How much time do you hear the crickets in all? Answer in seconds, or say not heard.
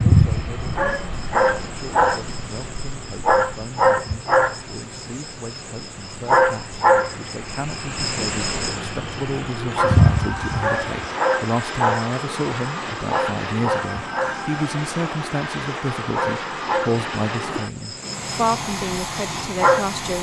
20 s.